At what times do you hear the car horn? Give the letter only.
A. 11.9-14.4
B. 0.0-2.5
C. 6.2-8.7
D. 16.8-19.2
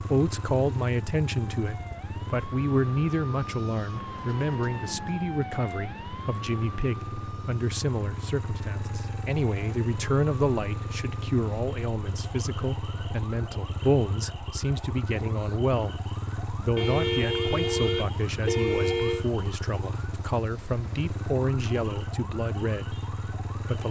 D.